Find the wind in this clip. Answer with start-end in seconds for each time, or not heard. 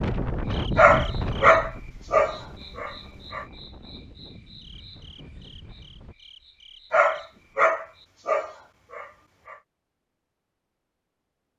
0.0-6.2.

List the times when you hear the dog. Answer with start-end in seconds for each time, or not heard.
0.8-3.5, 6.9-9.6.